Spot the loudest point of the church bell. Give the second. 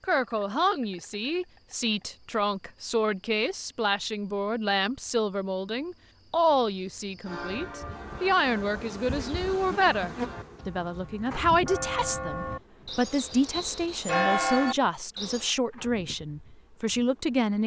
14 s.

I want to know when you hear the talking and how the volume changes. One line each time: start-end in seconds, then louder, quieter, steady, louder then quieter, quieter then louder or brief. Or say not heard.
0.0-17.6 steady.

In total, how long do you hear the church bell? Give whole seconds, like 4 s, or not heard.
8 s.